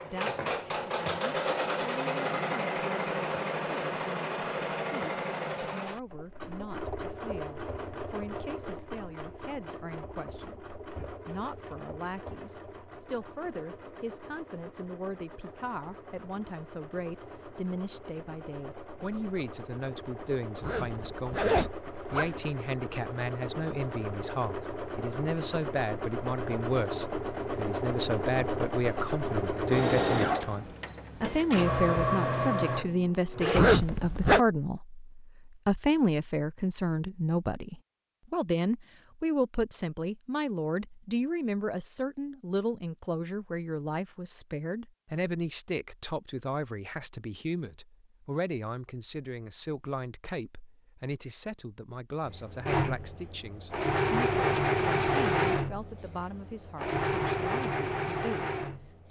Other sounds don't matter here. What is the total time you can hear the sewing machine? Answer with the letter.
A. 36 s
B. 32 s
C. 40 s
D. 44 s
C.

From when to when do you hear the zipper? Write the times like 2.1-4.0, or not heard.
20.6-22.4, 33.5-34.4.